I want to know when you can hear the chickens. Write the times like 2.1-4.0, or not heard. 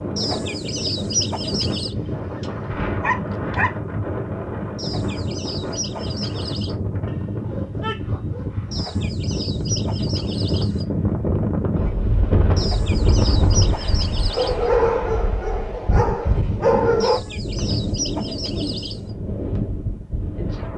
0.1-1.9, 4.8-6.8, 8.7-10.8, 12.6-14.7, 17.0-19.0.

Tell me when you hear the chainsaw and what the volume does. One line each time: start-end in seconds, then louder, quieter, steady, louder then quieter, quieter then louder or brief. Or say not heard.
not heard.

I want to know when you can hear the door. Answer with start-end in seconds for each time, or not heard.
not heard.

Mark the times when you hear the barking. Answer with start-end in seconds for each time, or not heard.
1.9-3.7, 7.0-9.0, 14.3-17.2.